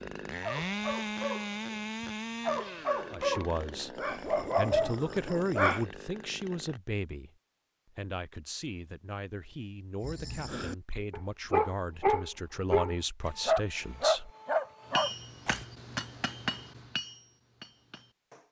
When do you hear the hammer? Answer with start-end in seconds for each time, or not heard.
14.9-18.4.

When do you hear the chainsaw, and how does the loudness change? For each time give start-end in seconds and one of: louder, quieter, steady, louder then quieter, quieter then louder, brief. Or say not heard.
0.0-6.8 quieter.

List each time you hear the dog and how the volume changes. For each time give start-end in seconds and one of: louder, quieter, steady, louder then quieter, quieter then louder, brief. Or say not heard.
0.4-5.8 louder
10.0-15.7 louder.